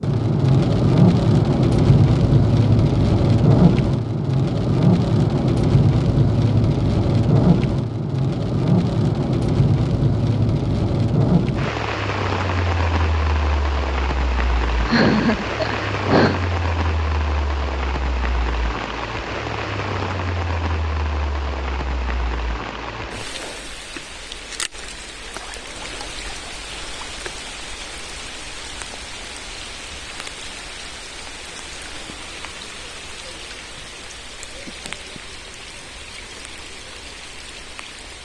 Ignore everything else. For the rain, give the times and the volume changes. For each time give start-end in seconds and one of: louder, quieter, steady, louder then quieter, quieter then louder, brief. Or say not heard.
0.0-38.2 quieter.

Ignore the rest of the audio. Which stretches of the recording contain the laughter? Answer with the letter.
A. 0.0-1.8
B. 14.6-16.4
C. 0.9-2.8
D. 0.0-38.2
B.